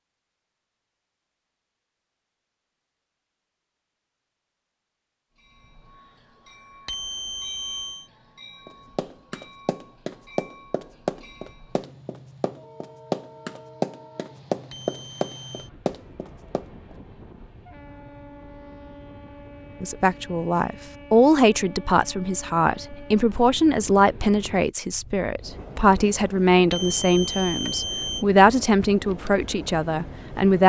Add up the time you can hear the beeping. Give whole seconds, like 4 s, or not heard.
4 s.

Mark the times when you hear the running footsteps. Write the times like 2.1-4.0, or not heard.
8.7-16.9.